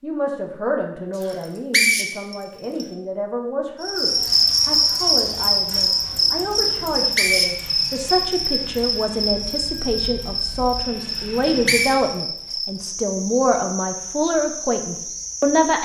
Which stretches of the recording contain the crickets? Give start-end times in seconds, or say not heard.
3.8-15.8.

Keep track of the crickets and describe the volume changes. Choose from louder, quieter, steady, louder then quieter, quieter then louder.
quieter.